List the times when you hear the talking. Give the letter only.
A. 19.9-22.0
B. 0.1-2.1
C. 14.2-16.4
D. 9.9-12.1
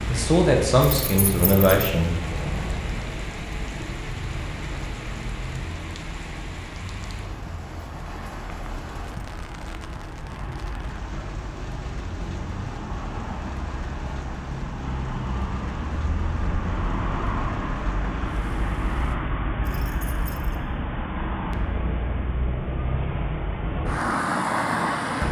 B.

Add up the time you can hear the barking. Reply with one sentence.
You can't hear the barking here.